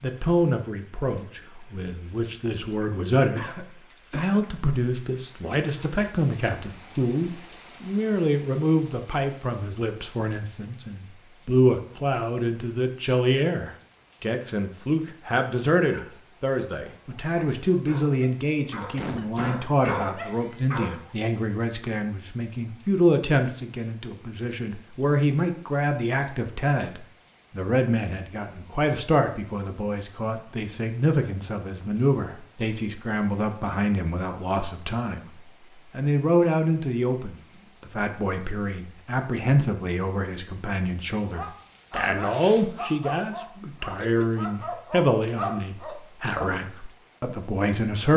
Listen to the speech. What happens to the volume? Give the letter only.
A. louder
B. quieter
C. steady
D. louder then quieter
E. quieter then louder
C.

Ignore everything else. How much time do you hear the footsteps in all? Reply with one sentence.
The footsteps can't be heard in this clip.